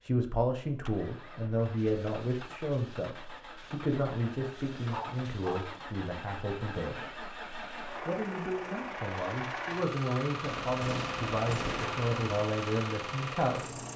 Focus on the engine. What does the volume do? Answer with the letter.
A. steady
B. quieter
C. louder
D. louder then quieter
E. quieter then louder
C.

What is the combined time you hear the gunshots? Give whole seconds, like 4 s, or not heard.
2 s.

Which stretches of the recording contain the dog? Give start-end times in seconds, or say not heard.
4.8-5.7.